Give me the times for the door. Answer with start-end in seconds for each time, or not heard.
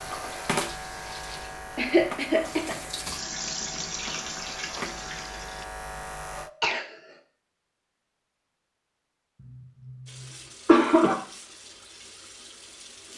not heard.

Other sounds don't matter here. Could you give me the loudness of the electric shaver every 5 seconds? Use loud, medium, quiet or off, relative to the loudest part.
loud, loud, off.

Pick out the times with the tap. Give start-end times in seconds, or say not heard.
0.0-5.7, 10.1-13.1.